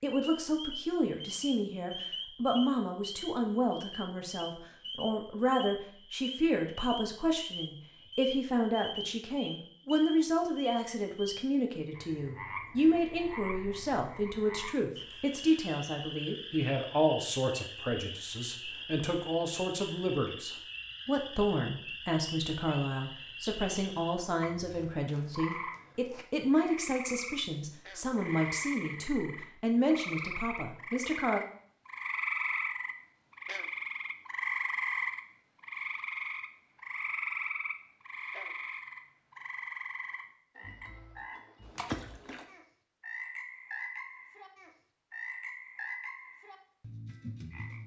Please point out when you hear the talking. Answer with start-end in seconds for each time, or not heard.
0.0-31.4.